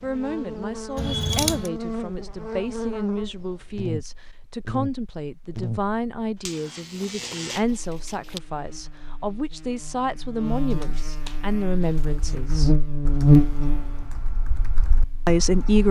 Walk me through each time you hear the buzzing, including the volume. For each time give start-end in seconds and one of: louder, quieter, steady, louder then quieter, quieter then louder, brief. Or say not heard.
0.0-15.8 quieter then louder.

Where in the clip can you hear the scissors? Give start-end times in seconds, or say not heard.
0.9-1.7, 6.8-8.4, 10.7-12.3.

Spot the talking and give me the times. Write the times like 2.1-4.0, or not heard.
0.0-12.8, 15.2-15.8.